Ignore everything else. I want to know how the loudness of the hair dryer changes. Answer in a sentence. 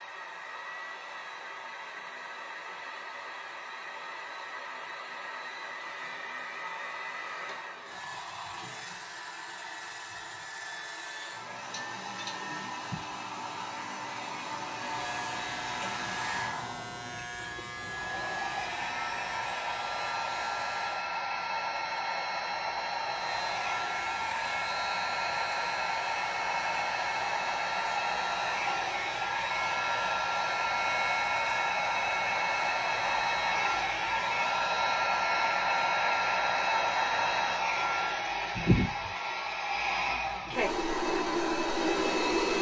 The volume of the hair dryer goes up.